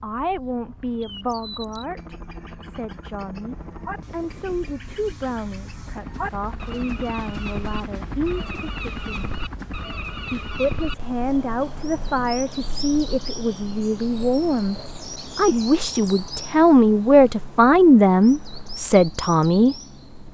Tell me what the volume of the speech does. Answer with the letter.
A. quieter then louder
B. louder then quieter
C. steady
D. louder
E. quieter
D.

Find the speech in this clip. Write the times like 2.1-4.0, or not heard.
0.0-9.3, 10.2-14.8, 15.3-19.8.